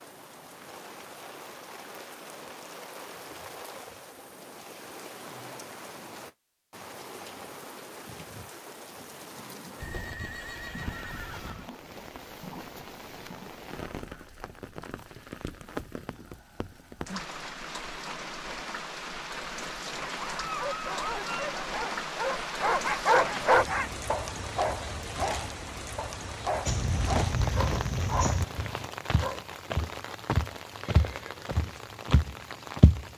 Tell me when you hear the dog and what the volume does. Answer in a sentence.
You can hear the dog from 20.2 to 29.4 s, getting louder then quieter.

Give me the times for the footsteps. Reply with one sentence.
The footsteps can be heard from 26.6 to 33.0 s.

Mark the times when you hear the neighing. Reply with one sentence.
The neighing can be heard from 9.8 to 11.7 s and from 30.8 to 31.4 s.